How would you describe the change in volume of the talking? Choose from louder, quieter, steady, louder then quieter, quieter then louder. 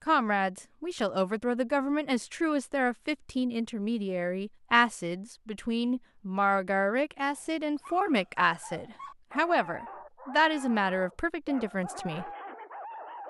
steady.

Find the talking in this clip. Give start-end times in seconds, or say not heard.
0.1-12.3.